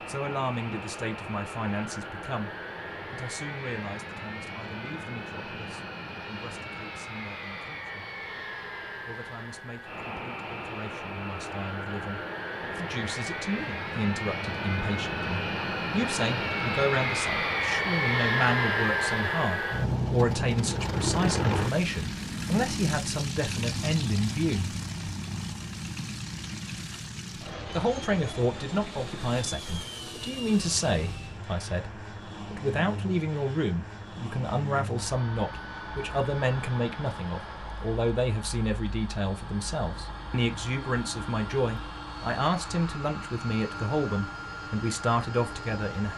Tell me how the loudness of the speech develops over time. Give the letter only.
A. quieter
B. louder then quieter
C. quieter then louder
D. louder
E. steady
D.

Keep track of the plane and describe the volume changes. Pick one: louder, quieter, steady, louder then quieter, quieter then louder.
louder then quieter.